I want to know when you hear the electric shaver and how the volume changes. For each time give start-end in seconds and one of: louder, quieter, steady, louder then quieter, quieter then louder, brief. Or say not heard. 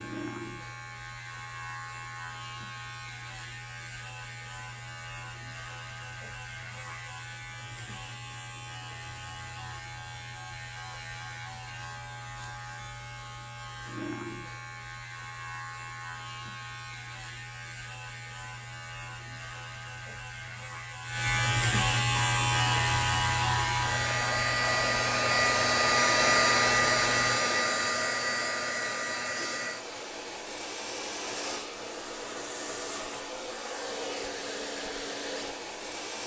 0.0-27.4 louder.